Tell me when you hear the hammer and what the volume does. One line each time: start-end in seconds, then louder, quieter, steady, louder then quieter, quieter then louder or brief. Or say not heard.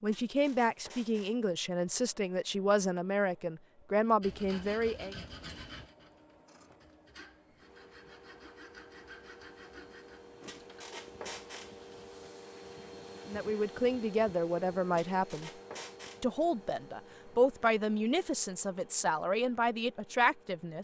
not heard.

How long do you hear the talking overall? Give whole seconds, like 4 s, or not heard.
12 s.